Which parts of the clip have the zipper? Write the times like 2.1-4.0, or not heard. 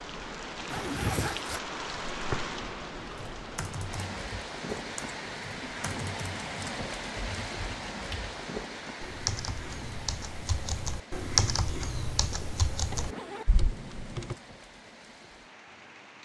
0.7-1.6, 12.9-13.6.